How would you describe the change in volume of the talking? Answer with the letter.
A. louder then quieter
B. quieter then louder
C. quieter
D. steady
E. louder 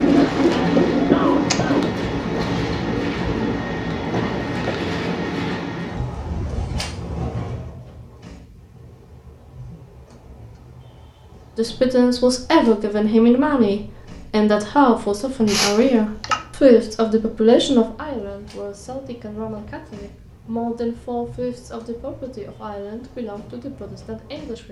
C.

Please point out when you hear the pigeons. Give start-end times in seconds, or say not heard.
0.0-4.8.